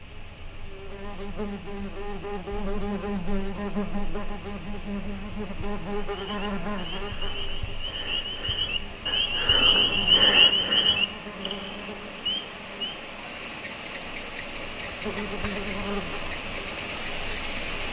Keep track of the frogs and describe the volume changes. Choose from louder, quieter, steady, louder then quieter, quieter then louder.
louder then quieter.